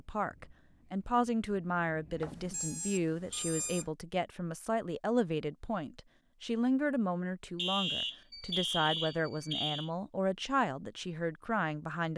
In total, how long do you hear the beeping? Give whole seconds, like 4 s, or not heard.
4 s.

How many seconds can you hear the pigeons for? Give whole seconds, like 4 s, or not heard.
not heard.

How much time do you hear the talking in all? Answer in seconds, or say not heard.
12 s.